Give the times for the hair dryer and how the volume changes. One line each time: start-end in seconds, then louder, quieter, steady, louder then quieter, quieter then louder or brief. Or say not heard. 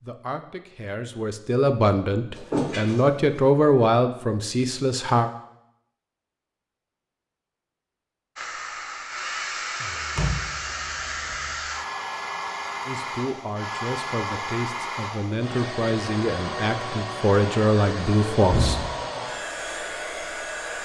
8.3-20.8 steady.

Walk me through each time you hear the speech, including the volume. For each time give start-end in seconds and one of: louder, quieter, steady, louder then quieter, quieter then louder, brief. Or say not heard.
0.0-5.3 louder then quieter
12.8-18.9 louder.